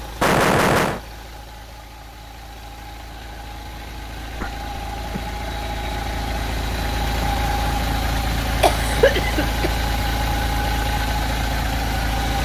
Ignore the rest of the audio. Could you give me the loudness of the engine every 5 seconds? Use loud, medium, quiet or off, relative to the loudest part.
quiet, loud, loud.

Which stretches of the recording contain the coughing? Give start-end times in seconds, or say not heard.
0.2-1.0, 4.3-5.2, 8.6-9.8.